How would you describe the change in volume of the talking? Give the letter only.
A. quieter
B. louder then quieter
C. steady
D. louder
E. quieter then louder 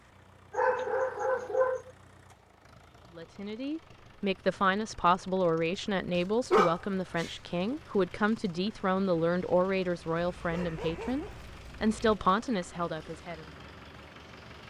C.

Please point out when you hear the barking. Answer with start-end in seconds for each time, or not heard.
0.5-1.9, 6.2-7.3, 10.2-12.2.